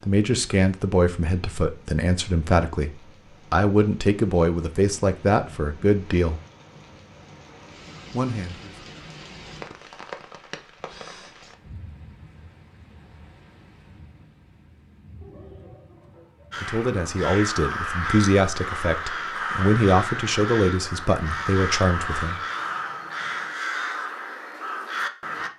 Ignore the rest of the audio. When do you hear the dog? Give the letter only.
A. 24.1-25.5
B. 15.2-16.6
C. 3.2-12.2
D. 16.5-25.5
B.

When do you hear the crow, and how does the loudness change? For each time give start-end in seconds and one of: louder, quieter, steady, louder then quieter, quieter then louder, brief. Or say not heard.
16.5-25.5 steady.